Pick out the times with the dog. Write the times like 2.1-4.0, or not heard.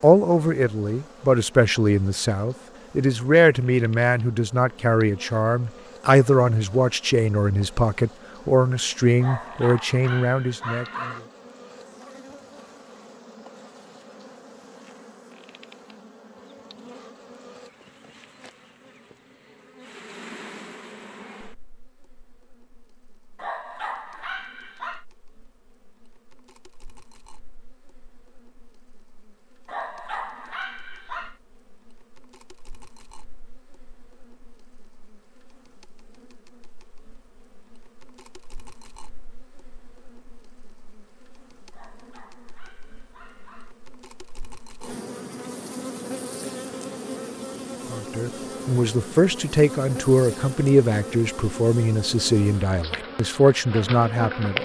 9.2-11.2, 23.4-25.1, 29.6-31.4, 41.7-43.8.